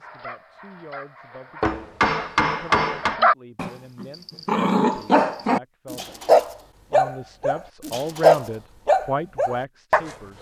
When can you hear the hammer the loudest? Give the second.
3 s.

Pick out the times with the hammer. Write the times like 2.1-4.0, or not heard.
1.6-3.2.